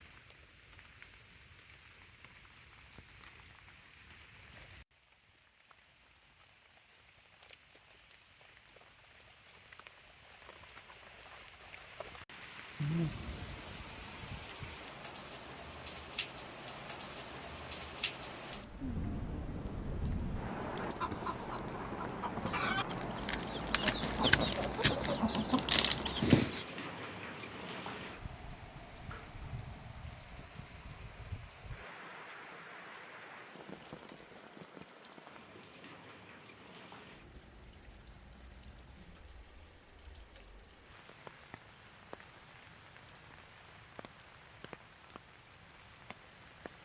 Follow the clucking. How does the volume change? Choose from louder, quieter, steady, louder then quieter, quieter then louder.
louder.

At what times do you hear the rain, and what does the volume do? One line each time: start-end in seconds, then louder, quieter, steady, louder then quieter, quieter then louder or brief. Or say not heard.
0.0-46.8 louder then quieter.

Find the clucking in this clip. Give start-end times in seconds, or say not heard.
20.8-26.6.